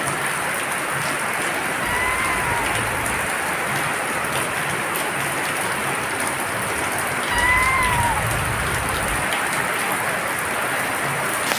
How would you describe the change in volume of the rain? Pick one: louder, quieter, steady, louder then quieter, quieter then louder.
steady.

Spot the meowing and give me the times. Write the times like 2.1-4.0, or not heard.
1.8-3.3, 7.3-9.2.